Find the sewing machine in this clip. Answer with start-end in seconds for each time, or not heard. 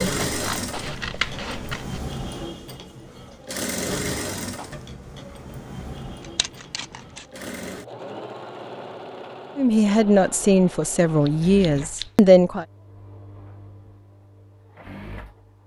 0.0-15.6.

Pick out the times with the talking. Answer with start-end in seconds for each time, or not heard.
9.6-12.7.